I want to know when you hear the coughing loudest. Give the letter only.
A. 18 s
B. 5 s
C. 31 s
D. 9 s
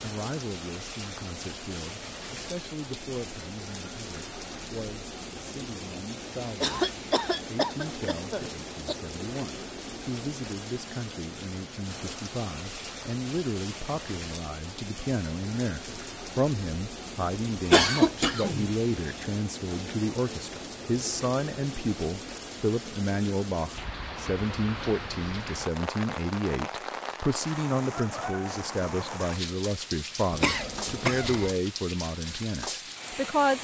A.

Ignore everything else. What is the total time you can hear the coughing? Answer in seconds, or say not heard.
5 s.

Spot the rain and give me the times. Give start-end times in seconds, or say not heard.
0.0-33.5.